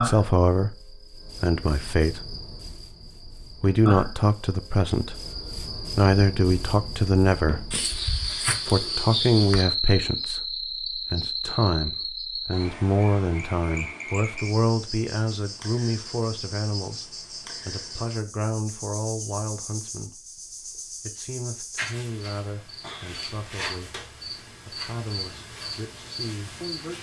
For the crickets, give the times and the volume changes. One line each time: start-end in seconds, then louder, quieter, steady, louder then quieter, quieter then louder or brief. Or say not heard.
0.0-26.9 louder then quieter.